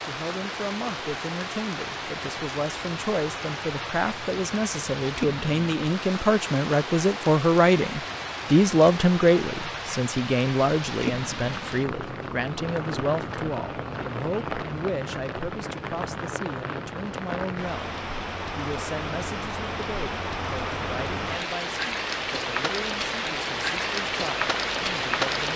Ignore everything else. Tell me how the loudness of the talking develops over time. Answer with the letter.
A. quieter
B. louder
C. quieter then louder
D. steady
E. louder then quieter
E.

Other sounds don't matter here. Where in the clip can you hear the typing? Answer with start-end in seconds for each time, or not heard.
not heard.